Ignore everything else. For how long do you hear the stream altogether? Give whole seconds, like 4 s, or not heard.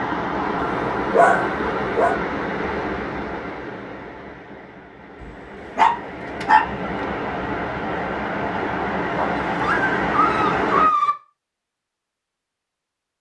11 s.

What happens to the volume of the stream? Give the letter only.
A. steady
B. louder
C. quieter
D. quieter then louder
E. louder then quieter
D.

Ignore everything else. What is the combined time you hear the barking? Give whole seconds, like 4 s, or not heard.
5 s.